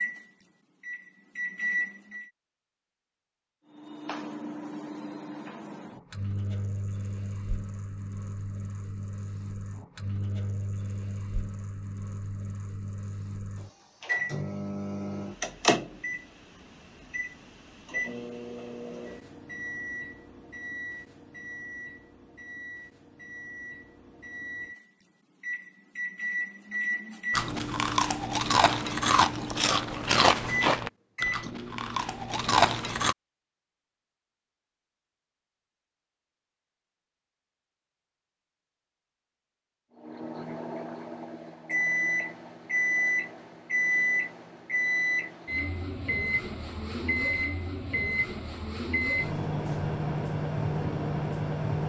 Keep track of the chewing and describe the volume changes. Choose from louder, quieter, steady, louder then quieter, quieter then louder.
quieter then louder.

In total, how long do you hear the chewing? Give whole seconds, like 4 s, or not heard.
6 s.